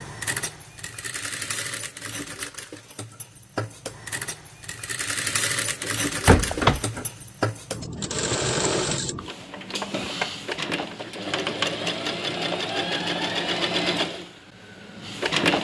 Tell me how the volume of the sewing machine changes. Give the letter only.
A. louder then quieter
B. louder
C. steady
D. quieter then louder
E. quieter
B.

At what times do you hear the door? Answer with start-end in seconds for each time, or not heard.
5.8-7.0.